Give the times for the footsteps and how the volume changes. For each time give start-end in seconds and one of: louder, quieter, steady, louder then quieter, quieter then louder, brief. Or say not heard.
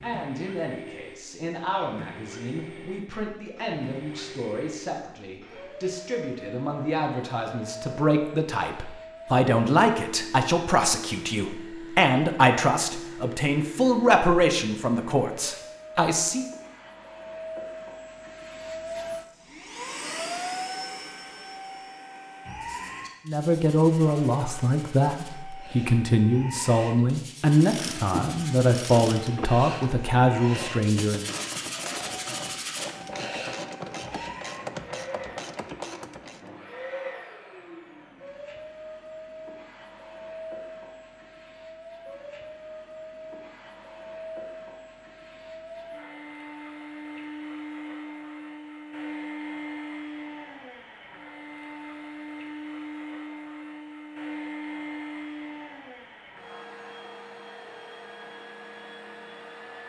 not heard.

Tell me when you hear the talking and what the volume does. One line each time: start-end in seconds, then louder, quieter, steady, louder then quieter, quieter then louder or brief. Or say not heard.
0.0-16.4 louder
23.2-31.2 steady.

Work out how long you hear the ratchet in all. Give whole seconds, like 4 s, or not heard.
9 s.